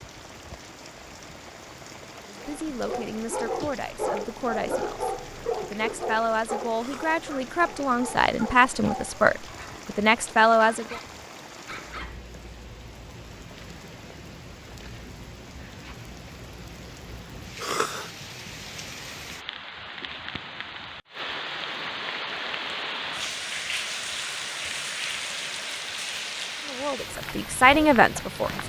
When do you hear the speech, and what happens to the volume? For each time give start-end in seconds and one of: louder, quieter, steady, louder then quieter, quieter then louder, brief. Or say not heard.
2.2-11.0 louder
26.6-28.6 brief.